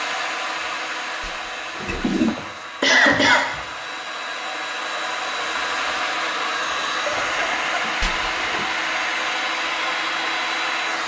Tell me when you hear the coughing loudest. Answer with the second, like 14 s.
3 s.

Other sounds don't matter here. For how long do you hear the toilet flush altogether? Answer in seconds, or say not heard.
2 s.